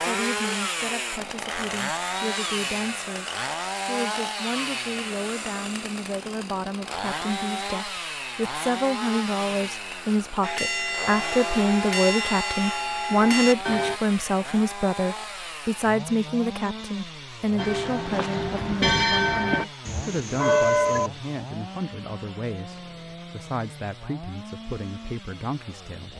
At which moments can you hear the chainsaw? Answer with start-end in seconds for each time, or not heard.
0.0-26.1.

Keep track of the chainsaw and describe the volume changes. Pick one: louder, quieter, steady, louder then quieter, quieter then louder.
quieter.